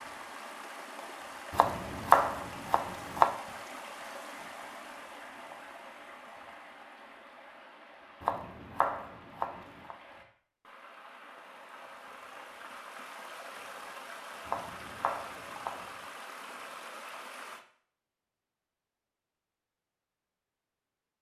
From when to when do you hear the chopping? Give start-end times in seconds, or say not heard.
1.5-3.4, 8.2-9.9, 14.4-15.9.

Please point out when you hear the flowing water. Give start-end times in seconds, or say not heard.
0.0-17.6.